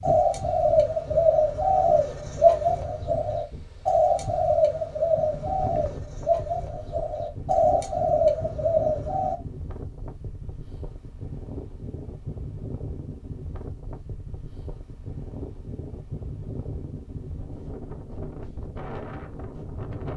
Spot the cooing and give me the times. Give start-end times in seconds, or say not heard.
0.0-9.3.